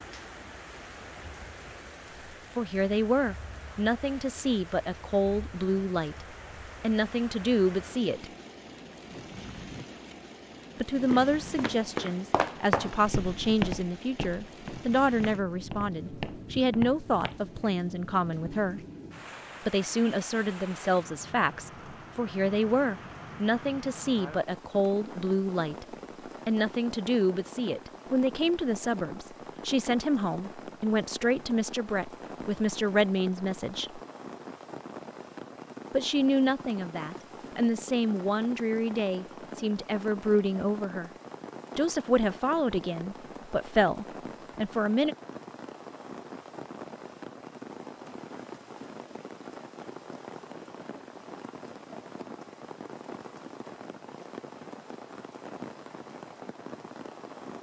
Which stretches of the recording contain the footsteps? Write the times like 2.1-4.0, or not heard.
11.1-17.6.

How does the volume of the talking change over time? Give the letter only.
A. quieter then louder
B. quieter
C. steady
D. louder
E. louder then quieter
C.